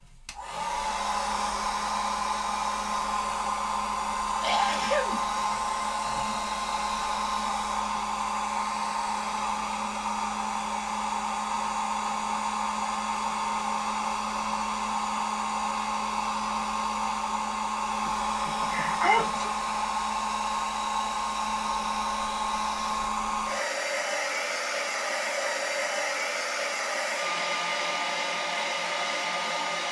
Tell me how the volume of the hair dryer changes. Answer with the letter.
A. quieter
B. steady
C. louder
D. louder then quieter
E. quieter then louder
B.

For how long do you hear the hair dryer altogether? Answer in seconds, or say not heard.
30 s.